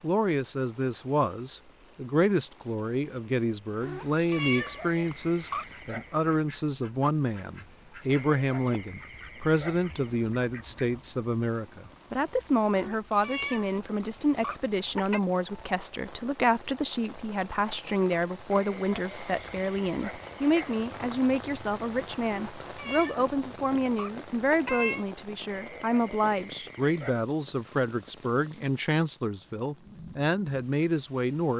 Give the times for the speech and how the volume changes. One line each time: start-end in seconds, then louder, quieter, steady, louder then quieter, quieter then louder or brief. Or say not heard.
0.0-31.5 steady.